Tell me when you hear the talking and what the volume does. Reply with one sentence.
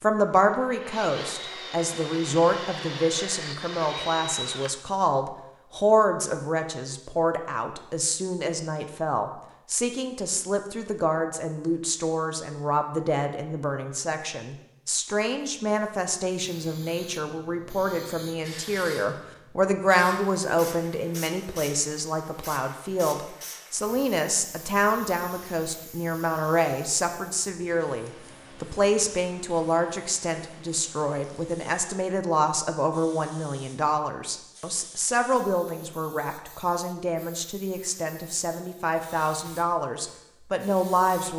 The talking can be heard from 0.0 to 41.3 s, at a steady volume.